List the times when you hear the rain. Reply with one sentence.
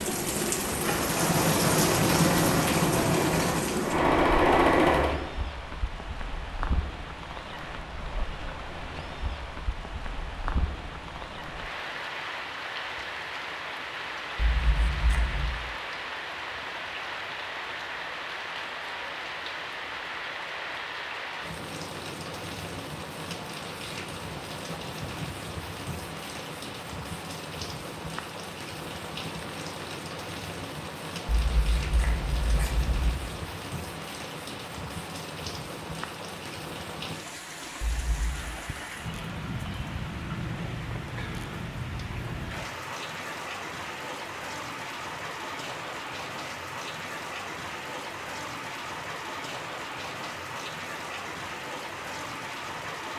The rain can be heard from 0.0 to 53.1 s.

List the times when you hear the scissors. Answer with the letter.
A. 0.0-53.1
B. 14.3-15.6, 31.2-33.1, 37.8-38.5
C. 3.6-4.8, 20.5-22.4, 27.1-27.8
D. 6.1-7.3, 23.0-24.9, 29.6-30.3
B.